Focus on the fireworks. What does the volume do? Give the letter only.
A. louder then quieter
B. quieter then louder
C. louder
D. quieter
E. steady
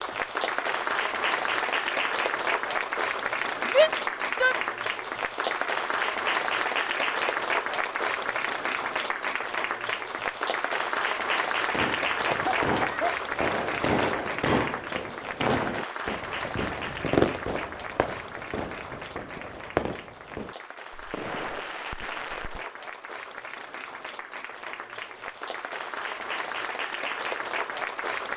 D.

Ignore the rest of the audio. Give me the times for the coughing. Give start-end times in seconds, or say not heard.
12.2-13.2.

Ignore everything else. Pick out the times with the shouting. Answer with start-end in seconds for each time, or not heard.
3.6-4.5.